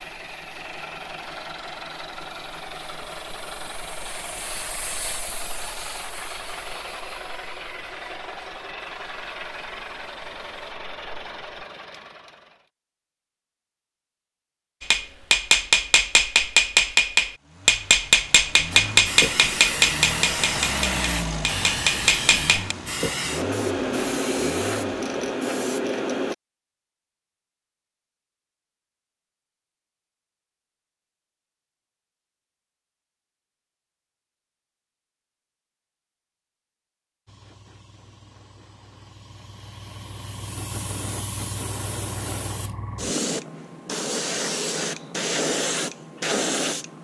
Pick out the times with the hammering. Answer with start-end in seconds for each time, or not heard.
14.8-22.8.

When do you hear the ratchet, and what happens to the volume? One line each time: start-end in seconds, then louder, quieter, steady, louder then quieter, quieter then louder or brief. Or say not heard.
not heard.